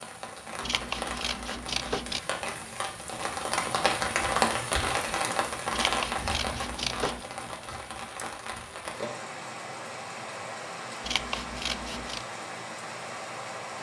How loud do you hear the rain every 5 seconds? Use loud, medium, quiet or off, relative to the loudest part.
loud, loud, medium.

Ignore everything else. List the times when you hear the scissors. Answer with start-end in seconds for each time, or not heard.
0.6-2.2, 5.7-7.2, 11.0-12.2.